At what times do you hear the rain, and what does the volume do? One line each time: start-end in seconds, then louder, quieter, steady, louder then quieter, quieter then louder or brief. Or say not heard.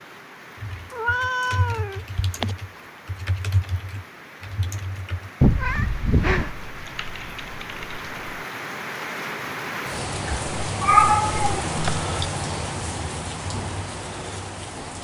0.0-14.9 louder.